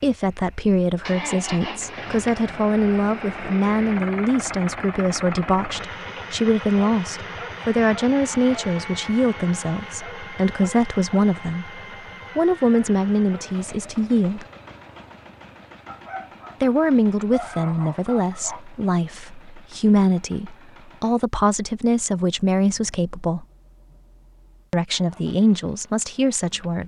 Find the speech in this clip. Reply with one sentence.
The speech can be heard from 0.0 to 14.4 s, from 16.6 to 23.4 s and from 24.7 to 26.8 s.